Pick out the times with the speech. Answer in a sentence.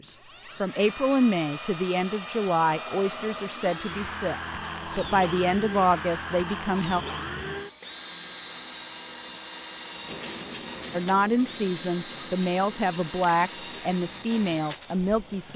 You can hear the speech from 0.0 to 7.0 s and from 10.9 to 15.5 s.